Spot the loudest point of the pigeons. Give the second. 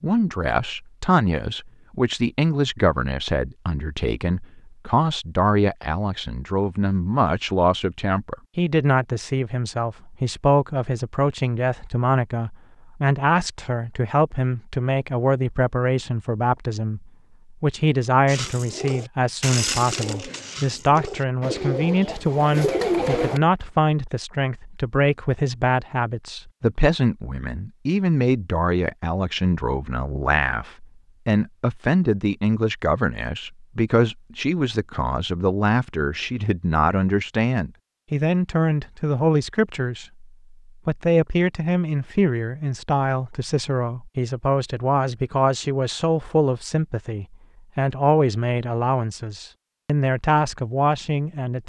23 s.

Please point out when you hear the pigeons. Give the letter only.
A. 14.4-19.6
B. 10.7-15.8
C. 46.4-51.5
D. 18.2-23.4
D.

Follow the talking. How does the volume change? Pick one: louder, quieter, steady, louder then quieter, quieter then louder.
steady.